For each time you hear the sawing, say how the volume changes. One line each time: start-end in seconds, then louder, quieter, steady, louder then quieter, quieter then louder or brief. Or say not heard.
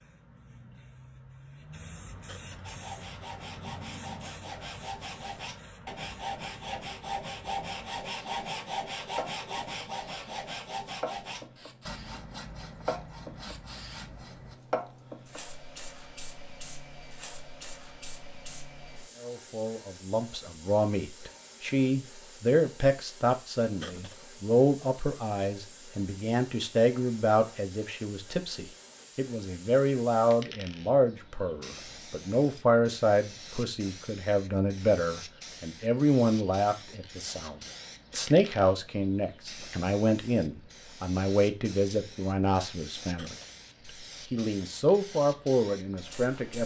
2.6-14.6 louder then quieter.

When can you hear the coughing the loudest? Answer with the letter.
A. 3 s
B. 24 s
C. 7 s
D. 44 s
B.